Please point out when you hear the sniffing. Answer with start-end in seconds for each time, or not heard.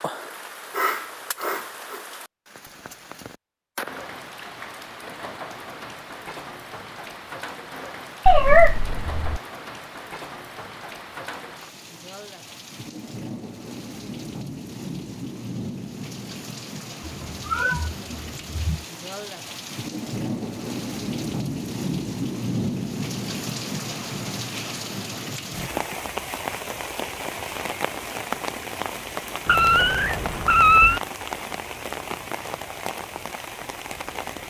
0.7-2.0.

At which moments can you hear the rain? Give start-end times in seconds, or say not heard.
0.0-34.4.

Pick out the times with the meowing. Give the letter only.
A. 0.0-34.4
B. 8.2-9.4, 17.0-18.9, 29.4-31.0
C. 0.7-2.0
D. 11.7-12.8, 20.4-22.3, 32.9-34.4
B.